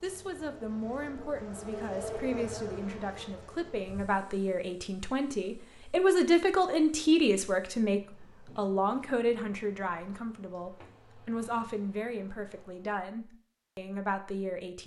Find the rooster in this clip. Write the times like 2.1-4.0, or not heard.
not heard.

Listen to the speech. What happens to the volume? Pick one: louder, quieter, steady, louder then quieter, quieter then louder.
louder then quieter.